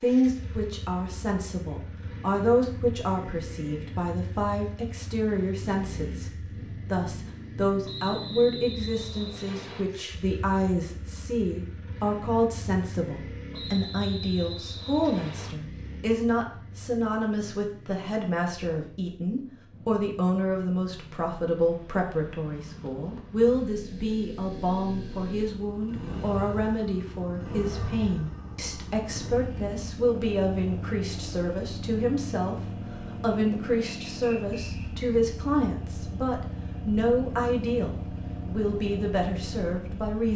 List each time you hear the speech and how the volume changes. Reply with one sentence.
The speech can be heard from 0.0 to 40.3 s, at a steady volume.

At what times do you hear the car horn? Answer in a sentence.
The car horn can't be heard in this clip.